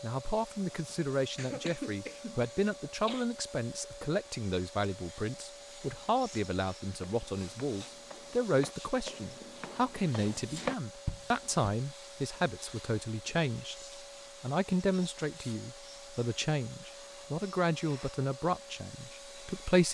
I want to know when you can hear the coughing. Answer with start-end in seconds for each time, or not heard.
1.4-3.3.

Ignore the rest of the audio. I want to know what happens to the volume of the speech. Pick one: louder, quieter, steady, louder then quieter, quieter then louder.
steady.